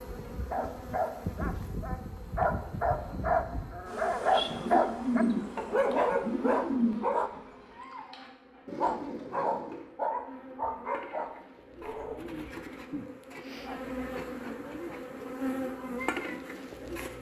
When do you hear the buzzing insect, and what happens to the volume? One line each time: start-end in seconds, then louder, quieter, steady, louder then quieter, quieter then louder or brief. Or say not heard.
0.0-17.1 quieter then louder.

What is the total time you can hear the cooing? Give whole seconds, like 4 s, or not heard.
5 s.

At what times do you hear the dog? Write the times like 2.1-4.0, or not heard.
0.5-7.3, 8.8-12.2.